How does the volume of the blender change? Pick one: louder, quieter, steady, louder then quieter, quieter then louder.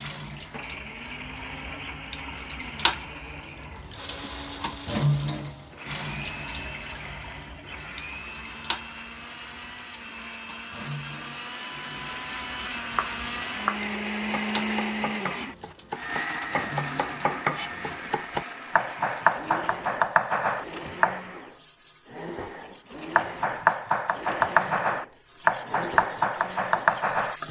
louder then quieter.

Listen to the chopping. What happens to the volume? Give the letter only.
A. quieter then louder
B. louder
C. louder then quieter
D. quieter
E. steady
B.